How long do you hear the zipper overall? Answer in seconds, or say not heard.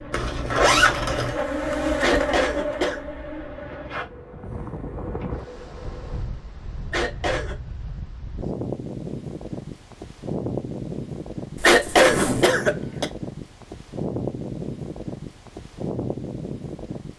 2 s.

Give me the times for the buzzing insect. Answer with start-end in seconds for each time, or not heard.
0.0-6.2.